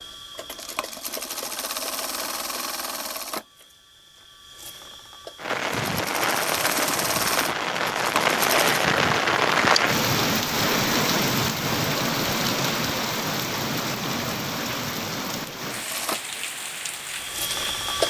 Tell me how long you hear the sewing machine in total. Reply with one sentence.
The sewing machine can be heard for 11 seconds in total.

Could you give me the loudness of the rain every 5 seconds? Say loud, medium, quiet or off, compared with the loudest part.
off, loud, loud, medium.